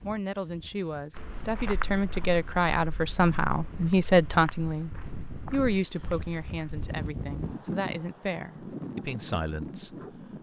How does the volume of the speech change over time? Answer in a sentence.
The volume of the speech goes up, then down.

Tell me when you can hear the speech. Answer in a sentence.
You can hear the speech from 0.0 to 10.3 s.